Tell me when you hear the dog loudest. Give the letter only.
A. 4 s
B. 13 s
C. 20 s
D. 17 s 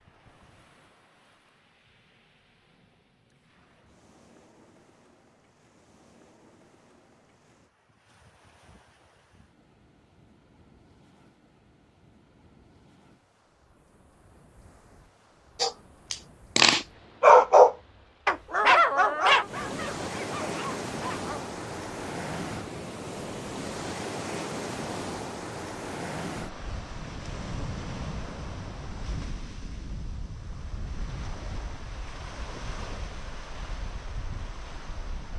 D.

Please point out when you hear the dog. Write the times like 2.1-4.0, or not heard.
15.6-21.4.